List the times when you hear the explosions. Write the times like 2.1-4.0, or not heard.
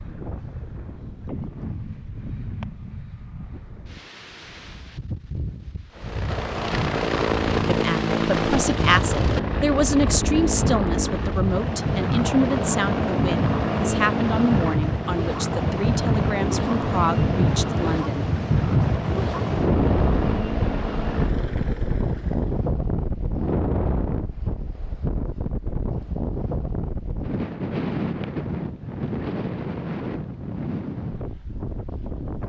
not heard.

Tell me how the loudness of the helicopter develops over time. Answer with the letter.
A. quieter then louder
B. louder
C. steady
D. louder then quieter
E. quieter
E.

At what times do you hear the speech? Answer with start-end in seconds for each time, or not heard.
7.7-18.3.